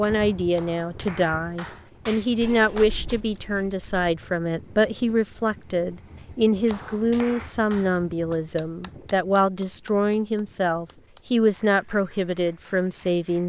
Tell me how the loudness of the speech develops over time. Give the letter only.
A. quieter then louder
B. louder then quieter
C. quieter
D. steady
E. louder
D.